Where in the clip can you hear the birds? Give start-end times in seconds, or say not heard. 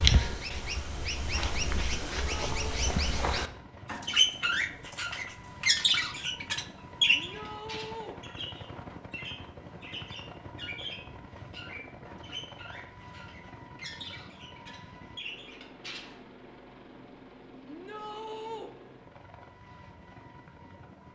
0.0-16.1.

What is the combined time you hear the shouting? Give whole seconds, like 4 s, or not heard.
3 s.